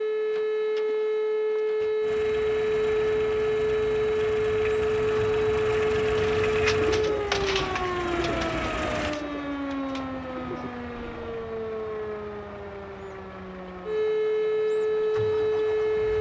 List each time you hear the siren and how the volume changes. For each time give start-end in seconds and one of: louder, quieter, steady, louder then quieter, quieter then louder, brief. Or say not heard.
0.0-16.1 quieter then louder.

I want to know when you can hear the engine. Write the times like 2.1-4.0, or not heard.
2.0-9.2.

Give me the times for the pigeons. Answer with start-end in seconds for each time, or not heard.
6.0-11.4.